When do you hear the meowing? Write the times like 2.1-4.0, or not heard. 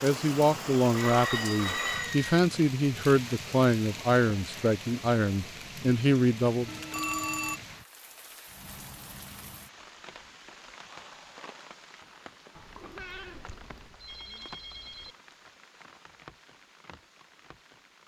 12.6-13.9.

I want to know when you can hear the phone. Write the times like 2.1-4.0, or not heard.
0.9-2.4, 6.7-7.6, 13.1-15.2.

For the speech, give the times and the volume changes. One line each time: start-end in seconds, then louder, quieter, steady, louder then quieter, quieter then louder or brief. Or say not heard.
0.0-6.8 steady.